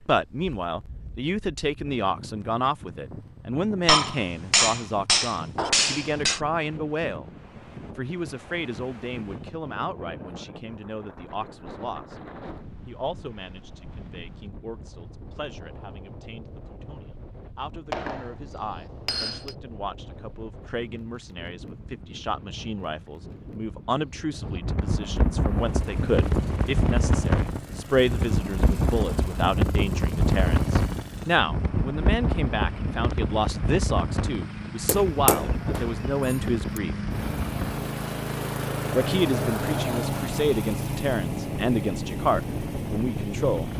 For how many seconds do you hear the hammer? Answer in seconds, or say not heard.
6 s.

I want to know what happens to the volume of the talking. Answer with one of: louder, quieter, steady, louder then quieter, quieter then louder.
quieter then louder.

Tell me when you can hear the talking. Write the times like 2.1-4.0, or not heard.
0.1-7.3, 8.0-12.2, 12.8-37.0, 39.0-43.7.